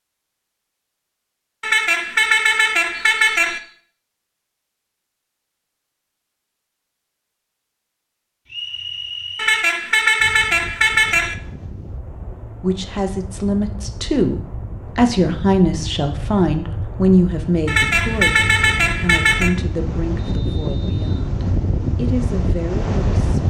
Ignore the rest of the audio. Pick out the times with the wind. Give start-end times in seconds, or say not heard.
10.2-23.4.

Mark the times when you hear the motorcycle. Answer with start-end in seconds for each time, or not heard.
not heard.